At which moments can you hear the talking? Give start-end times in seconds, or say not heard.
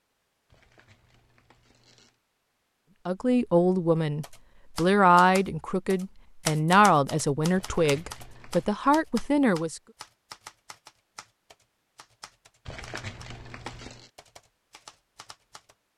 3.0-9.8.